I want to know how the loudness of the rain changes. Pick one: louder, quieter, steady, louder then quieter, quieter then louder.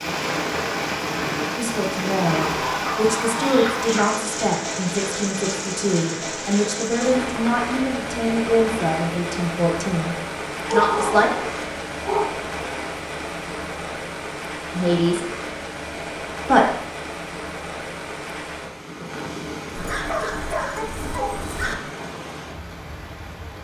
quieter.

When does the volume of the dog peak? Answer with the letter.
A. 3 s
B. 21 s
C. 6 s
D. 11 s
D.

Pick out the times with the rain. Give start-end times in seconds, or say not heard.
0.0-23.5.